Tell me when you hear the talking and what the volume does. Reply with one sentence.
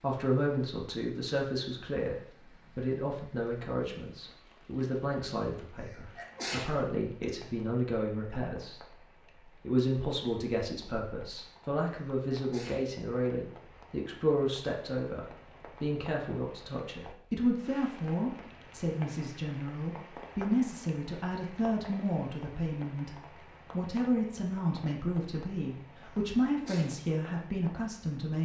The talking can be heard from 0.0 to 28.4 s, at a steady volume.